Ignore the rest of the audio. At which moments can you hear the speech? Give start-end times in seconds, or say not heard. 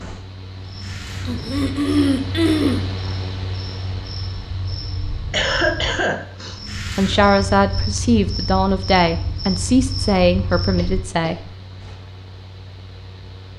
7.0-11.5.